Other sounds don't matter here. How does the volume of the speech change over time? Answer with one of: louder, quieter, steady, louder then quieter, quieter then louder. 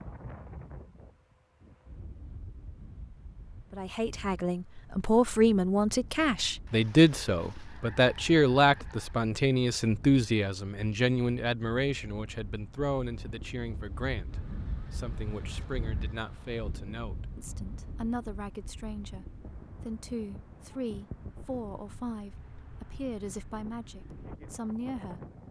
quieter.